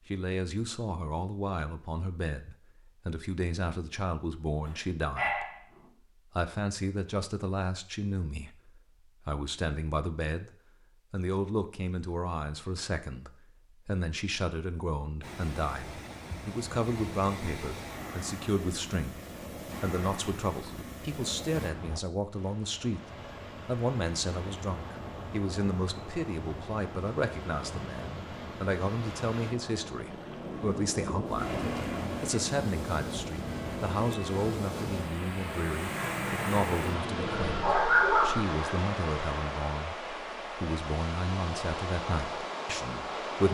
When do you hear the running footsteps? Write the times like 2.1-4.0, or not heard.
not heard.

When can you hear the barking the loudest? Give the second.
38 s.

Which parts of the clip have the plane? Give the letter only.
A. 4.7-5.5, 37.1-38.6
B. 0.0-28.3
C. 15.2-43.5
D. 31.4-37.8
D.